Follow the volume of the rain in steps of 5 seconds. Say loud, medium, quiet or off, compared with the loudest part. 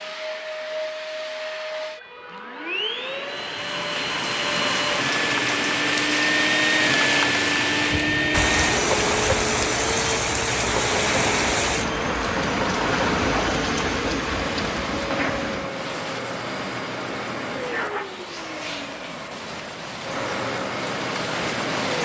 medium, loud, loud, medium, medium.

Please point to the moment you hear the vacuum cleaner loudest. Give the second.
7 s.